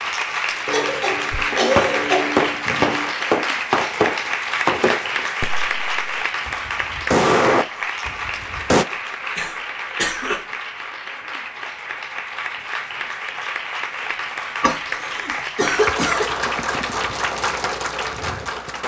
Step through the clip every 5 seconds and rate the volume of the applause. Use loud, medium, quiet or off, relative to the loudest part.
loud, loud, medium, loud.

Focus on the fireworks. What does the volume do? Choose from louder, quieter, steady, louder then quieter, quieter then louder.
quieter then louder.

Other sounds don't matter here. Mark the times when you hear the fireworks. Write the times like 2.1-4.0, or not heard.
1.3-8.8.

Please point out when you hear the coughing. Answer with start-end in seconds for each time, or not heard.
0.7-3.1, 8.9-10.4, 14.6-16.3.